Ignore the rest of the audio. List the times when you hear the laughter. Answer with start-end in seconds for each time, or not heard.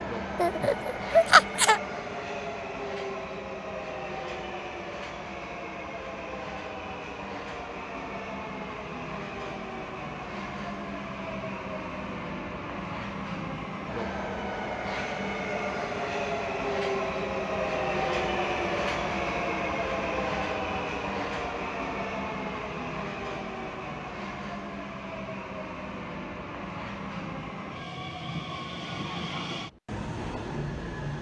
0.3-1.8.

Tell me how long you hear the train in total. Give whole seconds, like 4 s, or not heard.
31 s.